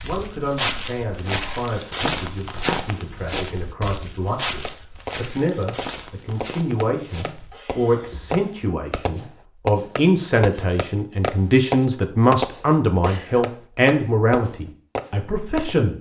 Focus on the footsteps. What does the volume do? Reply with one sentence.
The volume of the footsteps goes down.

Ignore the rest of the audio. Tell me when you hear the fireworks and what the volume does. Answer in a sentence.
The fireworks can be heard from 4.7 to 15.8 s, getting louder then quieter.